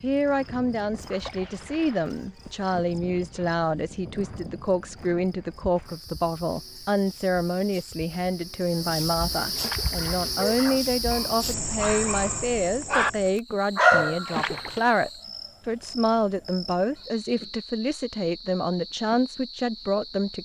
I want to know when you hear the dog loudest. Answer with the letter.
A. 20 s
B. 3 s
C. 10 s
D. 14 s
D.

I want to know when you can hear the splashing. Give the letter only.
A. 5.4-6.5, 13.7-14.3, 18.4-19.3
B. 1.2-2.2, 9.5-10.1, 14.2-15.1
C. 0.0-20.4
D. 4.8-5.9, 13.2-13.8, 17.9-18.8
B.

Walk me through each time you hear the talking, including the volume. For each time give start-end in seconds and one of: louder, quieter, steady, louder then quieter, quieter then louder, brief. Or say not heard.
0.0-20.4 steady.